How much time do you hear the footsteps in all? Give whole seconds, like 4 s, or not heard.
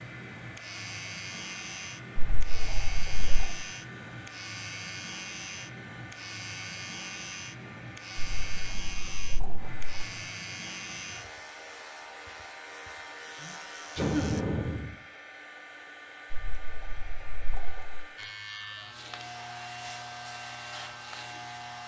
not heard.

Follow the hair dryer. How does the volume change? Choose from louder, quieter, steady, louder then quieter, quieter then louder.
steady.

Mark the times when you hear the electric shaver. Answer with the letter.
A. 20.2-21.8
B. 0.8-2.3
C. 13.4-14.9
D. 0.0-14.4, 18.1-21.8
D.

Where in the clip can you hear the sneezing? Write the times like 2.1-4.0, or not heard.
13.4-14.9.